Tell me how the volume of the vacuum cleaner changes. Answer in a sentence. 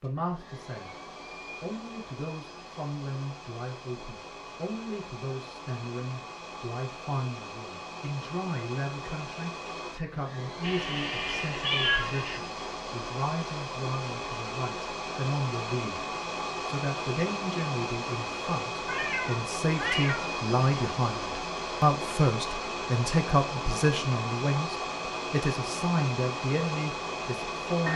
The loudness of the vacuum cleaner goes up.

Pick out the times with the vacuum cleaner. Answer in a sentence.
You can hear the vacuum cleaner from 0.0 to 27.9 s.